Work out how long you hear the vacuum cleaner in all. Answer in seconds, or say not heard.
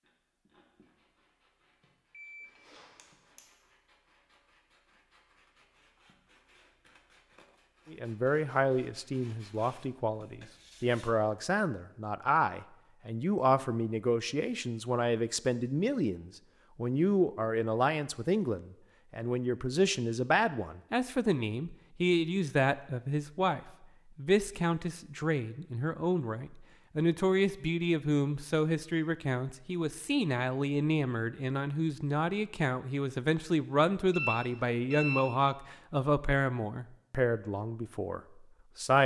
not heard.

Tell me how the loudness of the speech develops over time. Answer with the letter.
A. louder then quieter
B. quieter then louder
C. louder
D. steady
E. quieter
D.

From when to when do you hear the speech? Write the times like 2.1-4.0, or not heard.
7.9-39.0.